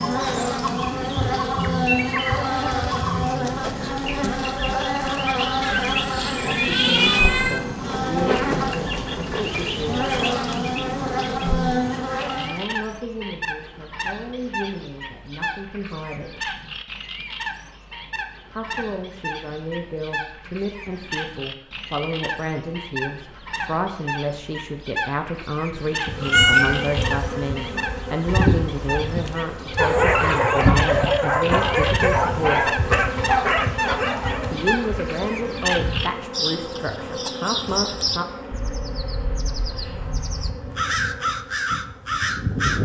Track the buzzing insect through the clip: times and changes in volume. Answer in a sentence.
The buzzing insect can be heard from 0.0 to 12.7 s, at a steady volume; and from 26.0 to 42.8 s, getting quieter.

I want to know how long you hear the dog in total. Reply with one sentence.
You can hear the dog for 5 seconds altogether.